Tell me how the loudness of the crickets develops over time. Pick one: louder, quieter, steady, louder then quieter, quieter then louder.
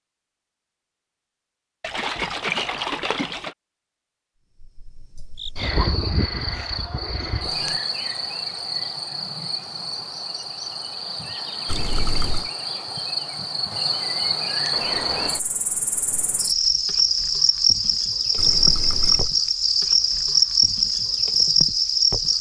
louder.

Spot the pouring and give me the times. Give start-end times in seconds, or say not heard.
1.8-3.5, 11.7-12.5, 18.4-19.4.